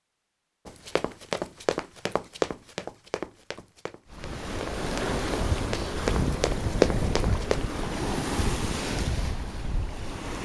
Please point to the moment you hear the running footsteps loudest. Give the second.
7 s.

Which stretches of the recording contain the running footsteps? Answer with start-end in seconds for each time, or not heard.
0.7-7.7.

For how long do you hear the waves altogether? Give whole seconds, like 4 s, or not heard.
6 s.